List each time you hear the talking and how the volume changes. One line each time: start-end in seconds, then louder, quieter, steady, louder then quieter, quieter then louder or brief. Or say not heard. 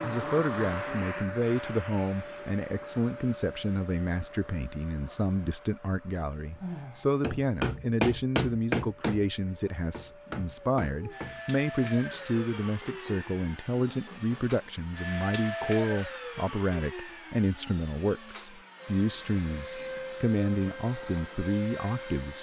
0.0-22.3 steady.